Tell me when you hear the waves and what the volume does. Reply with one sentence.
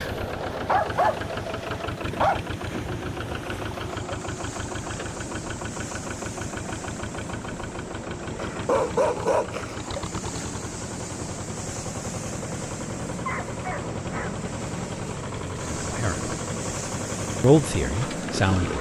You can hear the waves from 0.0 to 18.7 s, getting louder.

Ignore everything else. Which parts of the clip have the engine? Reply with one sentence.
You can hear the engine from 0.0 to 18.7 s.